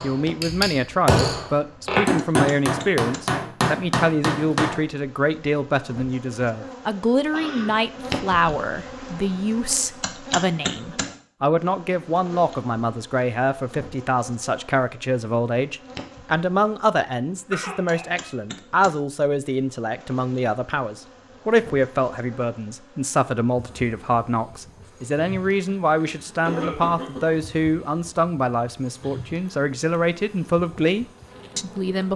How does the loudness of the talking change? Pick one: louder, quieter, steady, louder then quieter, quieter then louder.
steady.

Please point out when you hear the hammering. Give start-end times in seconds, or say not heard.
0.0-4.8.